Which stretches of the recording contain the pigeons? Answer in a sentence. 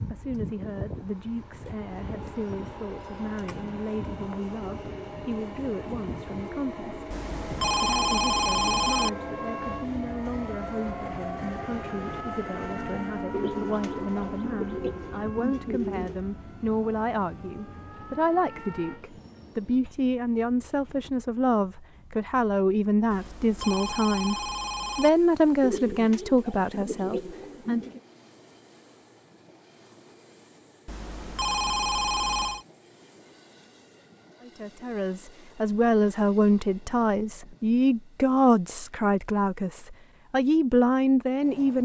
You can hear the pigeons from 13.3 to 16.2 s and from 25.6 to 28.0 s.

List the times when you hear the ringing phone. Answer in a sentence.
You can hear the ringing phone from 7.1 to 9.1 s, from 23.1 to 25.1 s and from 30.9 to 32.6 s.